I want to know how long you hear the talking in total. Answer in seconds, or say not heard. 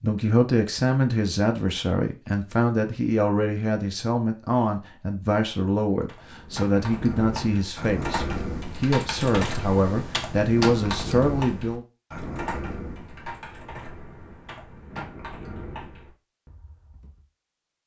12 s.